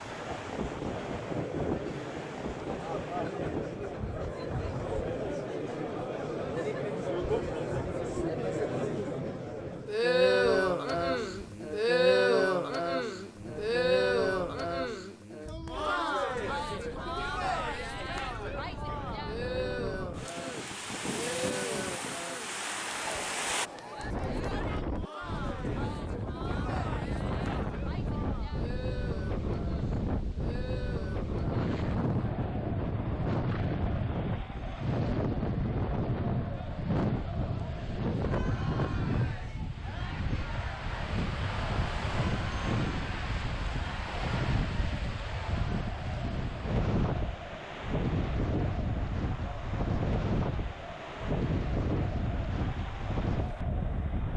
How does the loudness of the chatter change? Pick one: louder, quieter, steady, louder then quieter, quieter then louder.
quieter.